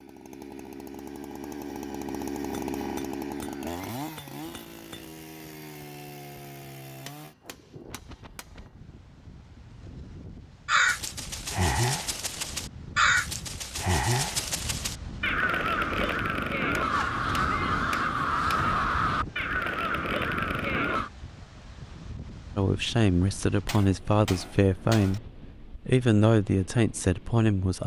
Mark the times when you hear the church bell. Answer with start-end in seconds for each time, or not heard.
not heard.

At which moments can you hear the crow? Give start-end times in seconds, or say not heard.
10.7-21.1.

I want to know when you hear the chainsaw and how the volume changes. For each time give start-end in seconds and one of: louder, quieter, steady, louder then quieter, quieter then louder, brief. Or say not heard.
0.0-7.3 louder then quieter.